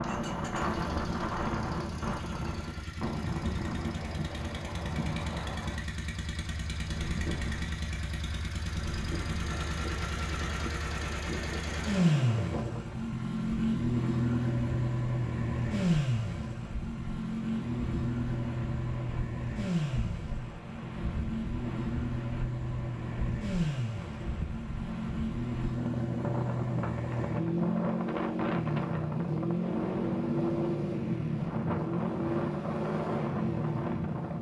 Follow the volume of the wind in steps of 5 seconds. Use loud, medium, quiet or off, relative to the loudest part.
loud, medium, medium, medium, medium, loud, loud.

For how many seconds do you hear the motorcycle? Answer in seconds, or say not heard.
34 s.